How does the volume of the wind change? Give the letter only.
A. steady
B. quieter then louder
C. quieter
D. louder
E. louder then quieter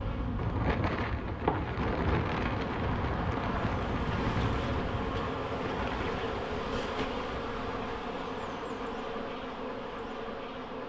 C.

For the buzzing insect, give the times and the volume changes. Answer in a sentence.
The buzzing insect can be heard from 0.0 to 10.8 s, at a steady volume.